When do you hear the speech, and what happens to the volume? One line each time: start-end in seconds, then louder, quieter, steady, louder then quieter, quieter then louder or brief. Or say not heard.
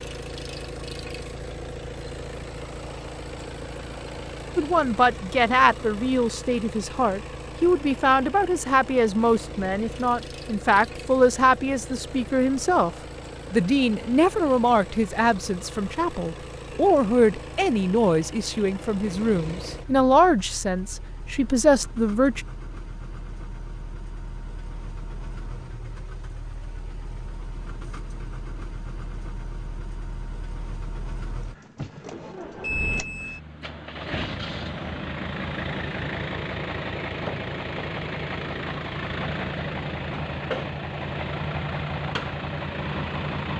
4.5-12.9 steady
13.5-22.4 steady.